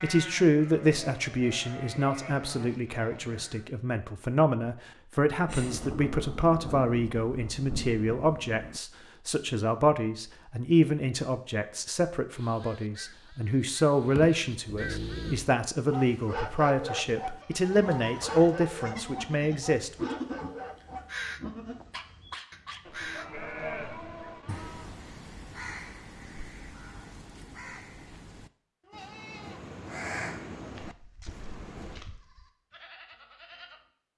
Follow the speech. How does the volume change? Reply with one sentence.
The volume of the speech stays about the same.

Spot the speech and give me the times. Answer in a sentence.
The speech can be heard from 0.0 to 20.1 s.